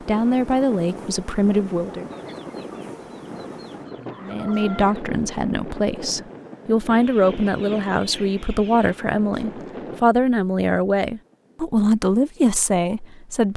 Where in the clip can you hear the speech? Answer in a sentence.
You can hear the speech from 0.0 to 2.1 s and from 4.2 to 13.5 s.